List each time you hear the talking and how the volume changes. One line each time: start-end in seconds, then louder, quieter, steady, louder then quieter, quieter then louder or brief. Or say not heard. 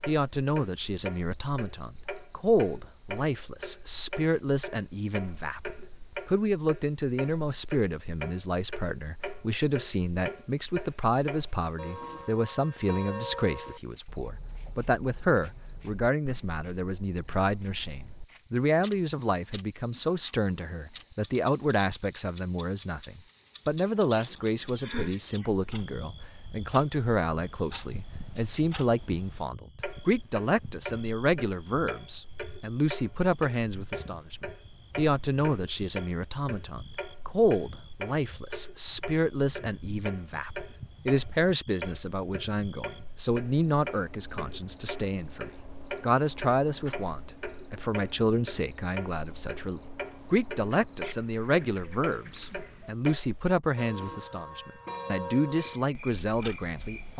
0.1-57.1 steady.